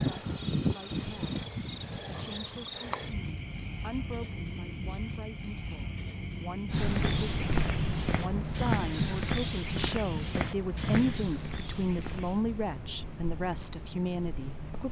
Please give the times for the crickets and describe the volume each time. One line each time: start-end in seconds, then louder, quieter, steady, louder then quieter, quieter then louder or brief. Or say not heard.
0.0-14.8 quieter.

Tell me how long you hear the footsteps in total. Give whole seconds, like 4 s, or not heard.
6 s.